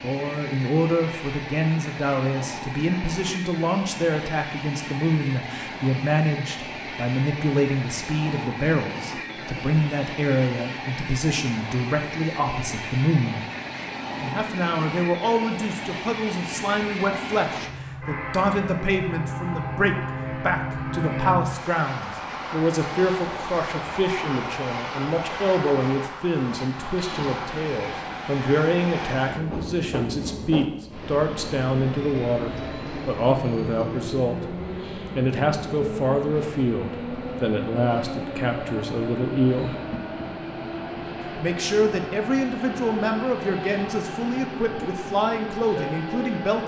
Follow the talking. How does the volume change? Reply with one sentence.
The volume of the talking stays about the same.